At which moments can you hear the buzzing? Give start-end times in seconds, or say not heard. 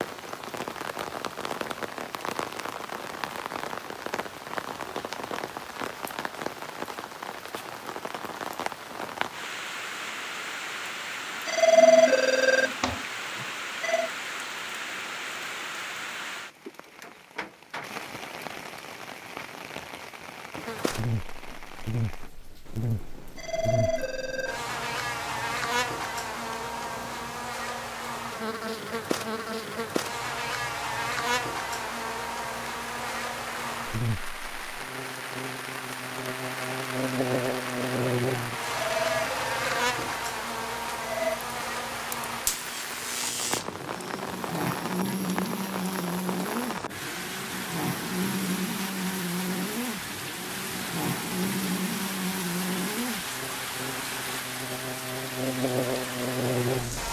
20.6-57.0.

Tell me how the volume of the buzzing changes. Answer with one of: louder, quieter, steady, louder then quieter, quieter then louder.
steady.